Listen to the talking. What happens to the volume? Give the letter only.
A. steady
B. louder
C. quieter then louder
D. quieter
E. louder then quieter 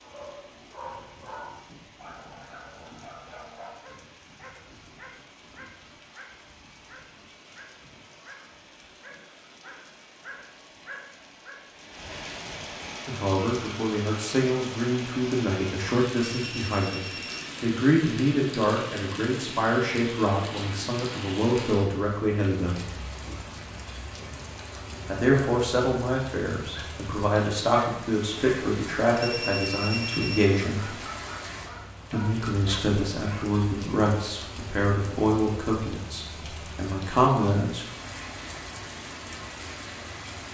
A.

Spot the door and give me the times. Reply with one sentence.
The door can't be heard in this clip.